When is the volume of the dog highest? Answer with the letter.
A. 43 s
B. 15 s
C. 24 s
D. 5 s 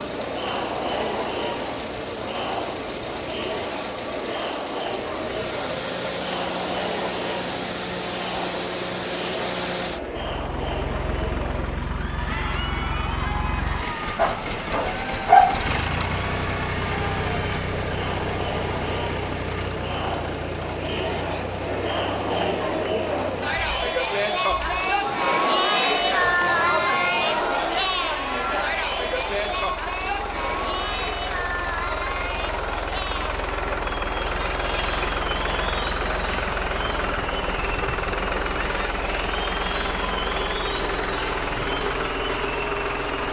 B.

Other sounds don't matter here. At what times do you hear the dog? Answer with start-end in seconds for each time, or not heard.
14.2-16.1.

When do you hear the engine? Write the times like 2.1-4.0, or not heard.
0.0-43.2.